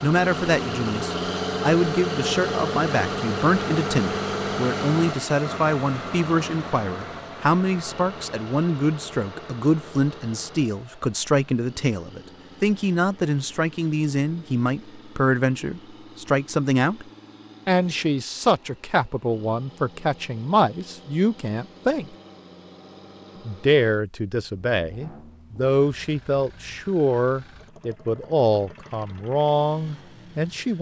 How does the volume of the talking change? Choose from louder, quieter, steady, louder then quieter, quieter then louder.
steady.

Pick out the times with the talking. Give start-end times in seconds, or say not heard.
0.0-17.1, 17.6-22.1, 23.4-30.7.